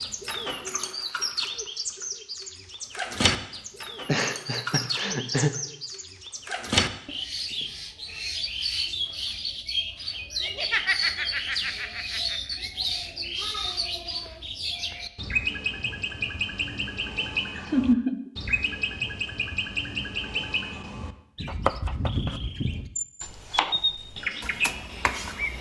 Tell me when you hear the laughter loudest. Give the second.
18 s.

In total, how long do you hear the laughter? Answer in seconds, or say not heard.
5 s.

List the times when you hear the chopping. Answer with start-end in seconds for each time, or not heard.
21.4-25.5.